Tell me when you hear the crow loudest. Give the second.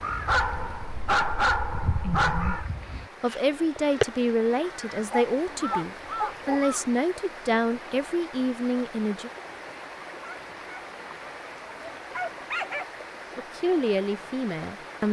4 s.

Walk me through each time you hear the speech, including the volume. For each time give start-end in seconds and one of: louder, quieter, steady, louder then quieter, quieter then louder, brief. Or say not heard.
3.2-9.3 steady
13.3-15.0 brief.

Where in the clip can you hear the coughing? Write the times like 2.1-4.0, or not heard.
not heard.